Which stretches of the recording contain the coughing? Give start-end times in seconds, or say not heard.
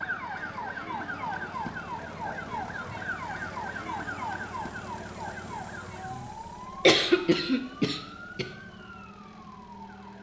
6.8-8.4.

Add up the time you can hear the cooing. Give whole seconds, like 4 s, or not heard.
not heard.